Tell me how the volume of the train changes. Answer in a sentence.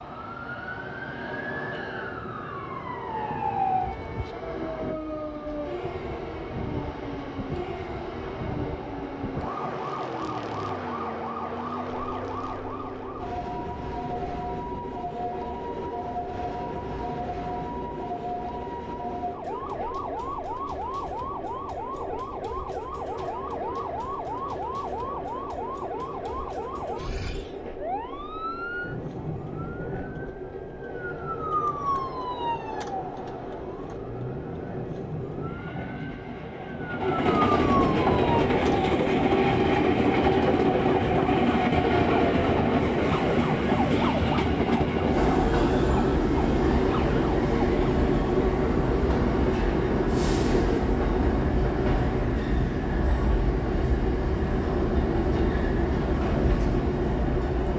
The volume of the train goes up.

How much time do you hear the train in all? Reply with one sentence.
The train can be heard for 58 seconds in total.